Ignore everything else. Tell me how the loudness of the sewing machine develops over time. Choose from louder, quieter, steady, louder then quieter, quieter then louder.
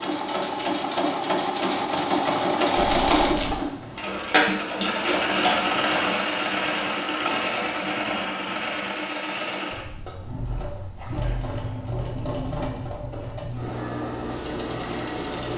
quieter.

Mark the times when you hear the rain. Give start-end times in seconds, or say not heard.
not heard.